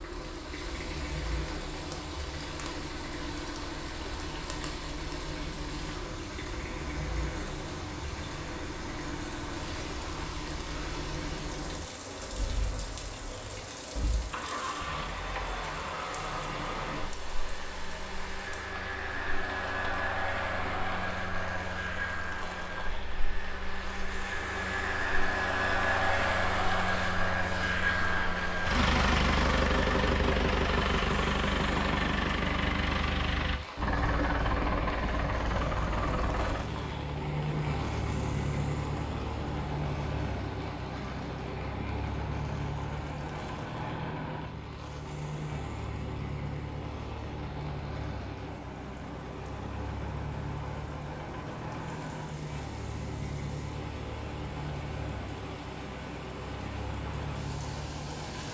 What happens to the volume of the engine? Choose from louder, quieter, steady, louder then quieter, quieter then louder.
louder then quieter.